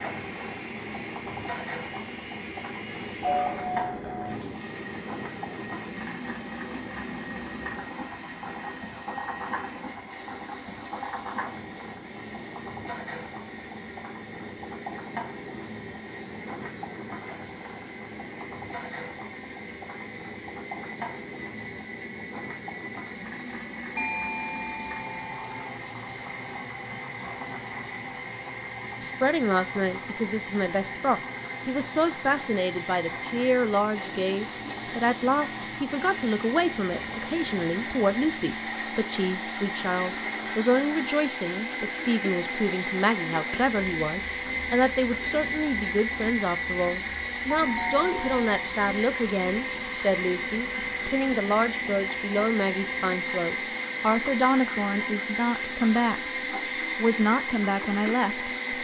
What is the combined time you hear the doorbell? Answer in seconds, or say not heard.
4 s.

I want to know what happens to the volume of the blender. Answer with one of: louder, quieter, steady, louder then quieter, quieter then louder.
louder.